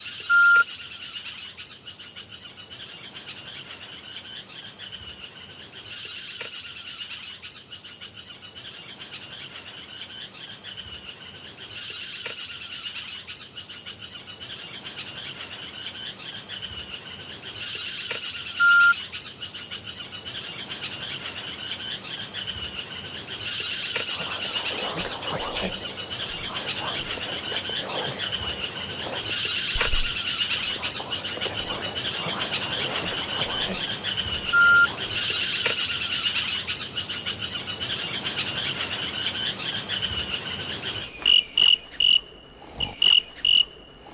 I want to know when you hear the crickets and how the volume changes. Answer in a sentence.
The crickets can be heard from 0.0 to 44.0 s, getting louder.